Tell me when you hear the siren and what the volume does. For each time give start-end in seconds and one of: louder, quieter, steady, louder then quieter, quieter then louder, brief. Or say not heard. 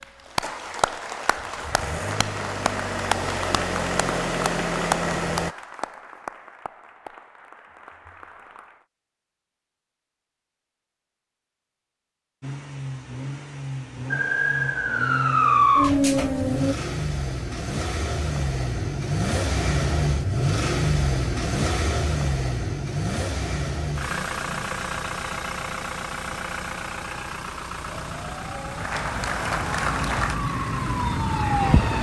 14.1-16.8 brief
27.8-31.9 louder.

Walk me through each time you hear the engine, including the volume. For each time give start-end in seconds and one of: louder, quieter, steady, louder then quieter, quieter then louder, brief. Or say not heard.
0.0-5.5 louder
12.4-31.9 louder then quieter.